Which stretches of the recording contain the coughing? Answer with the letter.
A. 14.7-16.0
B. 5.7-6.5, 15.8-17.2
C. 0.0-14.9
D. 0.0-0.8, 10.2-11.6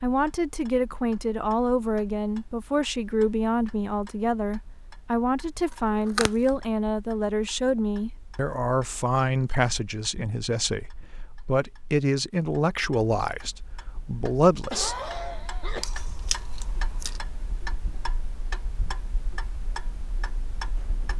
A.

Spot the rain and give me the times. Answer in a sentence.
You can't hear the rain here.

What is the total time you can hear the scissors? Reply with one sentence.
The scissors can be heard for 2 seconds in total.